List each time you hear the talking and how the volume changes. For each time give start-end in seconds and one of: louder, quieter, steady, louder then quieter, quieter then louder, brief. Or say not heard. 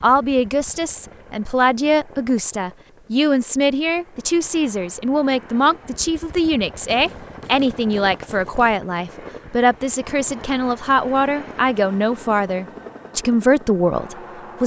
0.0-14.6 steady.